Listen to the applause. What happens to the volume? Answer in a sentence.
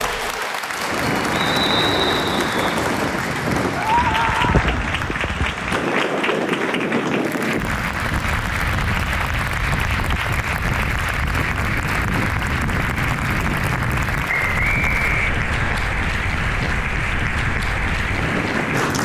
The loudness of the applause stays about the same.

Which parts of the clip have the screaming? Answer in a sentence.
You can hear the screaming from 3.8 to 4.8 s.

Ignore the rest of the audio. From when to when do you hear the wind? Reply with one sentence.
The wind can be heard from 0.0 to 19.0 s.